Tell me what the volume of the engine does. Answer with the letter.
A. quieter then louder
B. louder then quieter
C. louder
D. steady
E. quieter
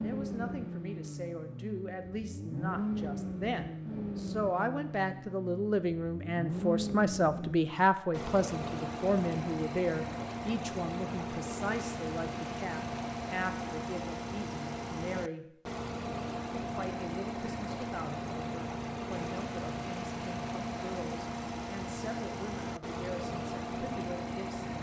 D.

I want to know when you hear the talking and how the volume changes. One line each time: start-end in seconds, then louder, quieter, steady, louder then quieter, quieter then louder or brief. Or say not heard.
0.0-15.6 louder then quieter
16.6-24.7 steady.